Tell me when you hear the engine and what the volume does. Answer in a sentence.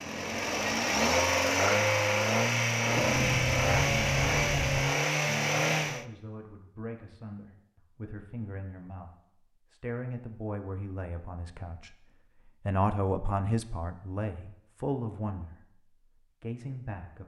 You can hear the engine from 0.0 to 6.0 s, at a steady volume.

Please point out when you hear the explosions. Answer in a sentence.
You can hear the explosions from 2.8 to 4.8 s.